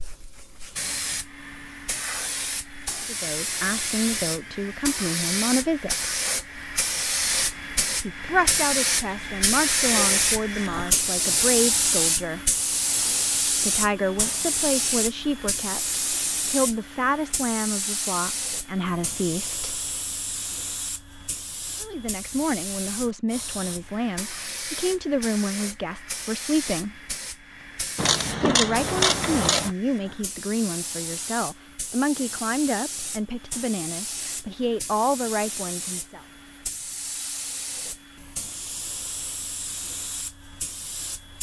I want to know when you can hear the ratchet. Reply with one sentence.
The ratchet can be heard from 27.9 to 29.7 s.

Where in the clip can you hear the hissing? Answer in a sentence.
The hissing can be heard from 0.0 to 41.3 s.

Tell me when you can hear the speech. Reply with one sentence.
You can hear the speech from 3.0 to 6.1 s, from 8.0 to 12.4 s, from 13.6 to 19.8 s, from 21.8 to 27.0 s and from 28.4 to 36.2 s.